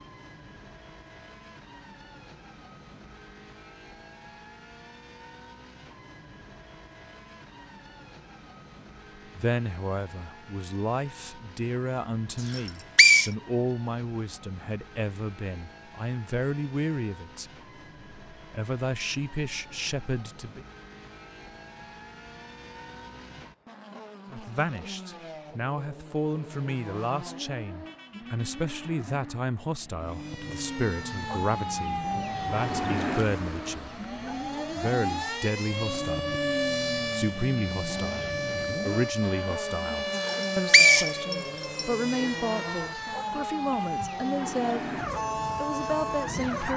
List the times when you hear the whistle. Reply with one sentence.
The whistle can be heard from 12.4 to 13.3 s and from 40.2 to 41.9 s.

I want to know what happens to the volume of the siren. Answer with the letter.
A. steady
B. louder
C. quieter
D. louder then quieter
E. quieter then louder
A.